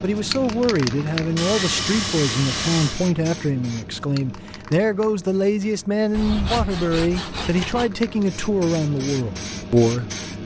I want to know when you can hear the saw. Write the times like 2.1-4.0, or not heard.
1.4-3.0, 6.1-7.9.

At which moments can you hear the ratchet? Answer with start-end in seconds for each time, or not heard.
not heard.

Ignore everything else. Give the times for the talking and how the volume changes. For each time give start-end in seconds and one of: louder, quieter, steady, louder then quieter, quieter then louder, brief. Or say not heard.
0.0-10.4 steady.